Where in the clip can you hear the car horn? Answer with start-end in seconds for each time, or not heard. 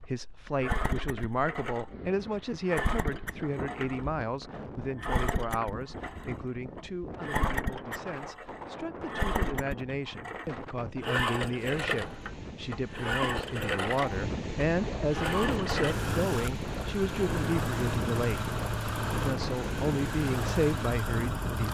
not heard.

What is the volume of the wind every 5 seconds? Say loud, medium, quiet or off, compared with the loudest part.
medium, medium, medium, loud, loud.